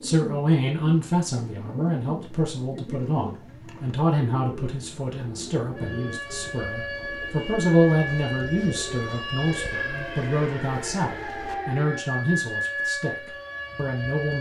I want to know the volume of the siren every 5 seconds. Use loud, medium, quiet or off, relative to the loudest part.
off, loud, loud.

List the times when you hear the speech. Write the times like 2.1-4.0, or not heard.
0.0-14.3.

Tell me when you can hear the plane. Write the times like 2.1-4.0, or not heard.
not heard.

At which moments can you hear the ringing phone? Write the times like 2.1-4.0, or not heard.
not heard.